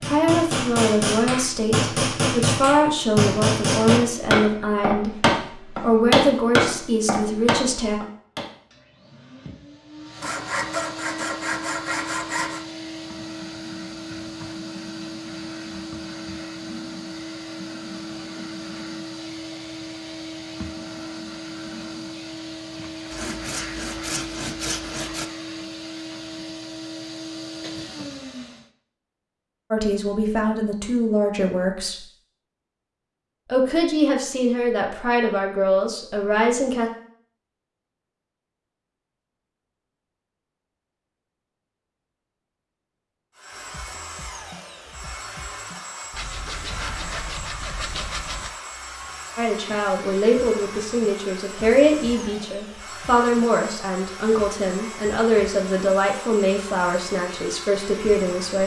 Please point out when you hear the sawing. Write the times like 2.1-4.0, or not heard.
10.2-12.6, 23.1-25.2, 46.1-48.5.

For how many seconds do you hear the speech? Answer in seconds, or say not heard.
23 s.